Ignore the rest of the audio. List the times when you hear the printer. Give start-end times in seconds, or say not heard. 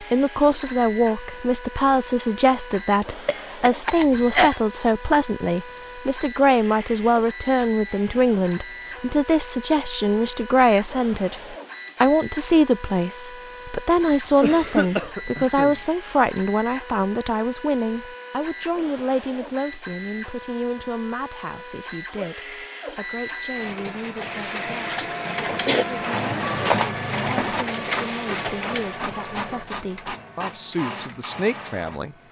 0.0-32.2.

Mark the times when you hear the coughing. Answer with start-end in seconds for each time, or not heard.
3.2-4.6, 14.4-15.8, 24.6-25.9.